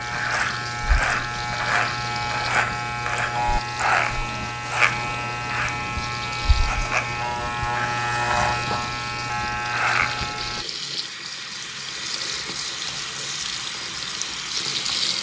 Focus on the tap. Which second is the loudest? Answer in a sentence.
The loudest moment of the tap is at 15 seconds.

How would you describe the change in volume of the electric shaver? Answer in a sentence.
The loudness of the electric shaver stays about the same.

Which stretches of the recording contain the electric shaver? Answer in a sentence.
You can hear the electric shaver from 0.0 to 10.7 s.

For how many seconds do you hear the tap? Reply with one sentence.
You can hear the tap for 15 seconds altogether.